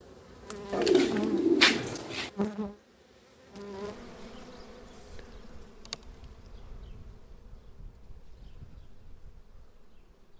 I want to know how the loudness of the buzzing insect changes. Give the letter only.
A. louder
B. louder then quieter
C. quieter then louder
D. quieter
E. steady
D.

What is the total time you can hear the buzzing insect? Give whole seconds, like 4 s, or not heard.
10 s.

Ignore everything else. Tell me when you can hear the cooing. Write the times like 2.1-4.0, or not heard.
0.7-2.3.